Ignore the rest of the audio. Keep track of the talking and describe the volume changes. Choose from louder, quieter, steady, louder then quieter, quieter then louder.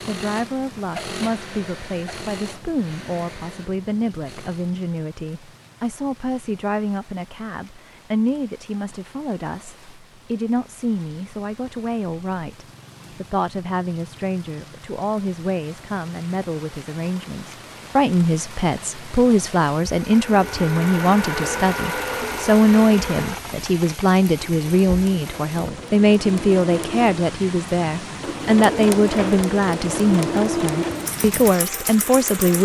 louder.